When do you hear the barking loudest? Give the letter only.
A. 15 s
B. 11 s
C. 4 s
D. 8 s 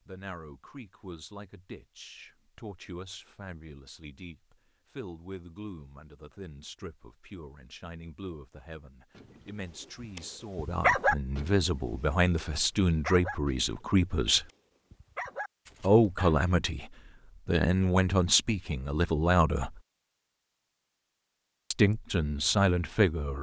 B.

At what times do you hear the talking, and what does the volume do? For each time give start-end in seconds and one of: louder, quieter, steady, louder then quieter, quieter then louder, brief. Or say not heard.
0.1-14.4 louder
15.8-19.8 quieter then louder
21.7-23.3 brief.